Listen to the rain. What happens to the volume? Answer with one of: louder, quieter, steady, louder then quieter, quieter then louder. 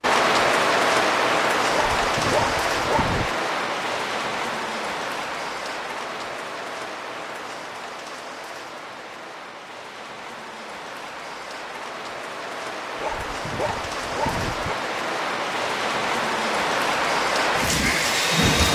quieter then louder.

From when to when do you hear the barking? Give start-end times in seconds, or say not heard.
1.7-3.3, 13.0-14.8.